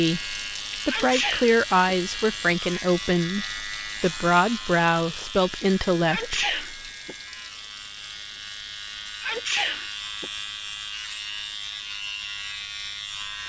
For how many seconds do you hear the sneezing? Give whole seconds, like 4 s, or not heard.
3 s.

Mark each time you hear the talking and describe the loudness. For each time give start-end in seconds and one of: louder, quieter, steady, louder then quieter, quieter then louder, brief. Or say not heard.
0.0-6.5 steady.